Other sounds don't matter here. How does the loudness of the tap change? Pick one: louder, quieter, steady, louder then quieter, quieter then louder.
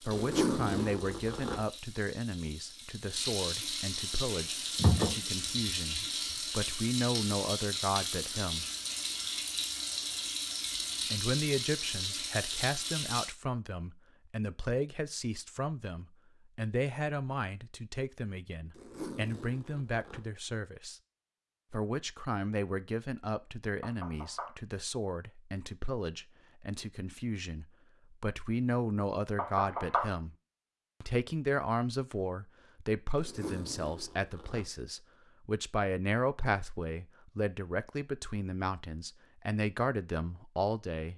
louder.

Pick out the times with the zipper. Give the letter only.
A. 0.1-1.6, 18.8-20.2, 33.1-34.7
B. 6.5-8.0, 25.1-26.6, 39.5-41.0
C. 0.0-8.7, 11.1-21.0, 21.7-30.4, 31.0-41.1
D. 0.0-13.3
A.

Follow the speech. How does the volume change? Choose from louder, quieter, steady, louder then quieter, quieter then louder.
steady.